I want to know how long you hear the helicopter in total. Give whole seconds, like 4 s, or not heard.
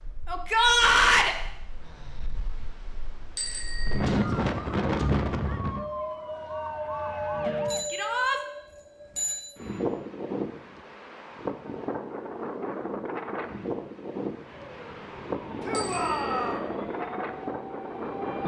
not heard.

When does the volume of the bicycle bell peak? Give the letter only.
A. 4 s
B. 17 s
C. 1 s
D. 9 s
D.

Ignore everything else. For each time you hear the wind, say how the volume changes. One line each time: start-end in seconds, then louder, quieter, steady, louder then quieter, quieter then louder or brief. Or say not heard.
0.0-18.4 louder then quieter.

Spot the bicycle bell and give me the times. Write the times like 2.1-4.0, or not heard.
3.4-4.0, 7.7-9.6, 15.7-16.6.